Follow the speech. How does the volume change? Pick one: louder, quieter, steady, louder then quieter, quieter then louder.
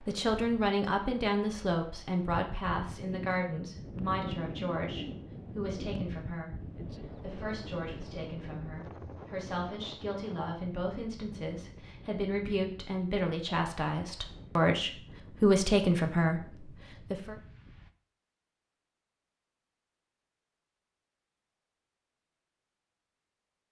quieter then louder.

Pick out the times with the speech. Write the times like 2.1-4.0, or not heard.
0.1-17.4.